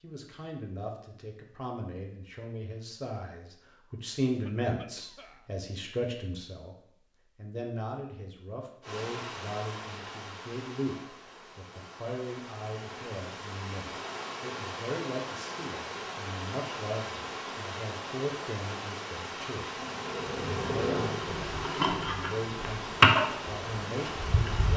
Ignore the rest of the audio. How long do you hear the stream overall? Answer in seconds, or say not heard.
16 s.